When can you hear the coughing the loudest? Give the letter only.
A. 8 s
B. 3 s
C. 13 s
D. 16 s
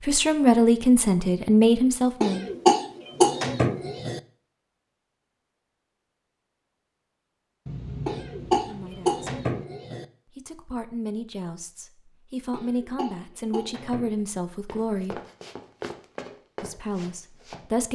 B.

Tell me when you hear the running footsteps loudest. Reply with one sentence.
The loudest moment of the running footsteps is at 16 seconds.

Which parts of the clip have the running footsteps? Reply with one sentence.
You can hear the running footsteps from 14.7 to 17.6 s.